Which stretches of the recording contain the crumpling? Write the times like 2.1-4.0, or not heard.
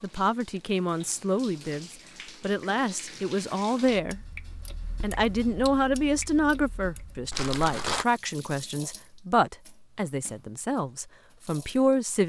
7.3-8.1.